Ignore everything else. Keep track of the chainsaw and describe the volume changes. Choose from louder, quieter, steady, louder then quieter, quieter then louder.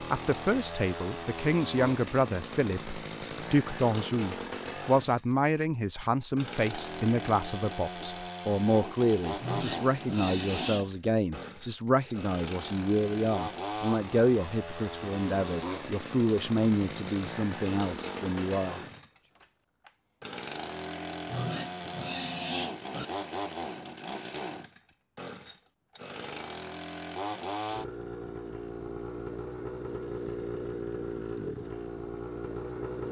steady.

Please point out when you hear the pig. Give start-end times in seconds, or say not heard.
9.4-11.0, 21.2-23.1.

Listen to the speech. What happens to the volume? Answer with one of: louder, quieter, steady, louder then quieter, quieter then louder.
steady.